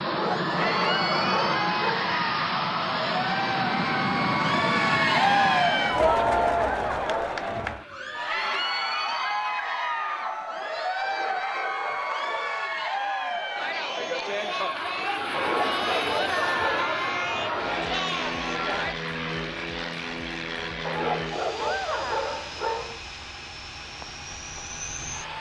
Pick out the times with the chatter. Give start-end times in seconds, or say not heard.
0.1-18.9.